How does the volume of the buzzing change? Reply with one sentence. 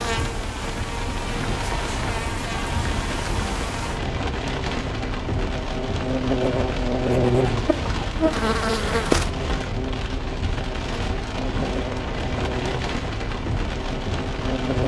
The loudness of the buzzing goes up, then down.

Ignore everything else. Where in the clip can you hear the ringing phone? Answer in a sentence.
You can't hear the ringing phone here.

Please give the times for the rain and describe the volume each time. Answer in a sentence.
You can hear the rain from 0.0 to 14.8 s, at a steady volume.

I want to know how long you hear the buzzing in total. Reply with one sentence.
You can hear the buzzing for 15 seconds altogether.